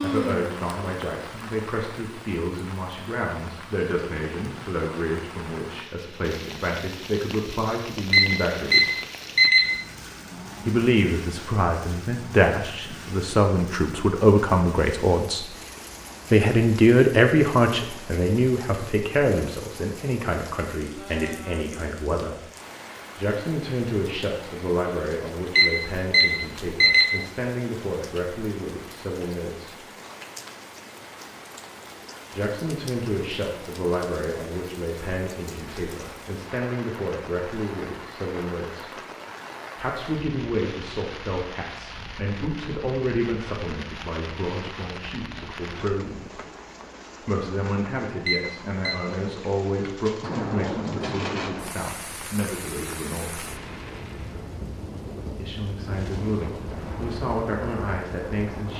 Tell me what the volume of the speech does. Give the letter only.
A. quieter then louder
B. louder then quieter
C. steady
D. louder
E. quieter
B.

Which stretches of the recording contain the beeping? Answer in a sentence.
The beeping can be heard from 8.1 to 9.7 s, from 25.6 to 27.1 s and from 48.2 to 49.0 s.